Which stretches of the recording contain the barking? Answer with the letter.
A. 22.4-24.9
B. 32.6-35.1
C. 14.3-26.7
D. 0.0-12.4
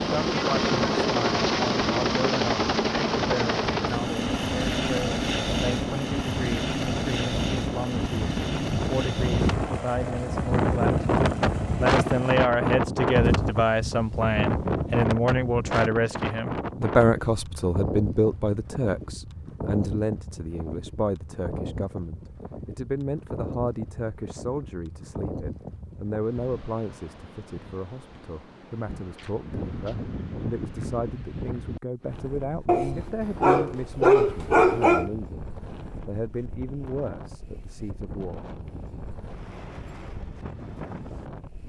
B.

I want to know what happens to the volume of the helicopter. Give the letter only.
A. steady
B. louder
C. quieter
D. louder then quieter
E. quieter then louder
C.